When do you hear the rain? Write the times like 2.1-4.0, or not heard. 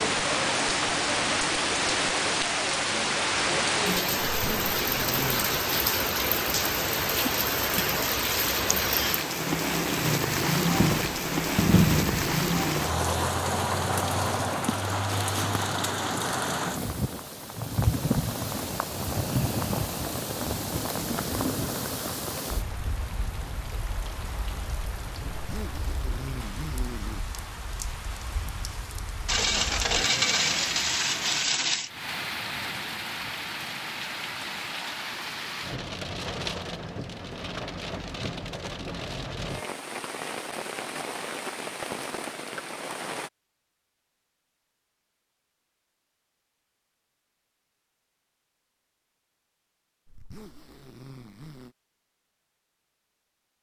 0.0-43.3.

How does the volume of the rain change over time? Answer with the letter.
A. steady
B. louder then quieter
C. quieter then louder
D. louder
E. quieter
E.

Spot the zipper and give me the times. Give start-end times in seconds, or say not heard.
4.3-5.6, 25.3-27.2, 50.0-51.8.